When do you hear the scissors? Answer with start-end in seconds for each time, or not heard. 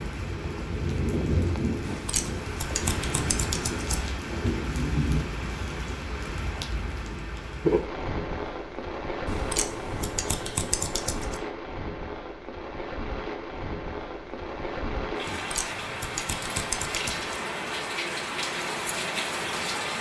1.8-4.1, 9.2-11.4, 15.2-17.4.